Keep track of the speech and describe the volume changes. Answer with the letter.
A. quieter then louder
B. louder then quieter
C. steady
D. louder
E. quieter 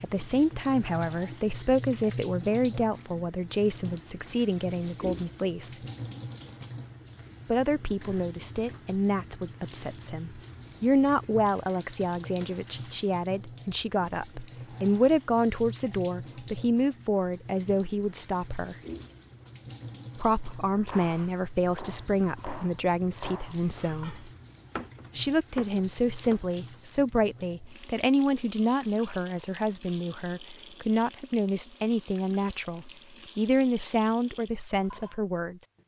C.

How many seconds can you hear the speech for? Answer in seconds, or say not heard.
32 s.